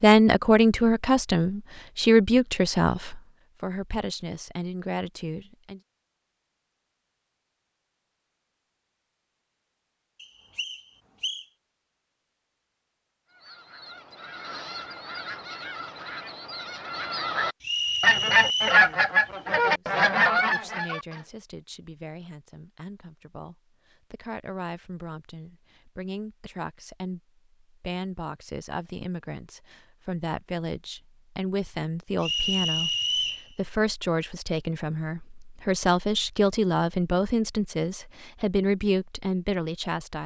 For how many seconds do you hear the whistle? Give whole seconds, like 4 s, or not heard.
4 s.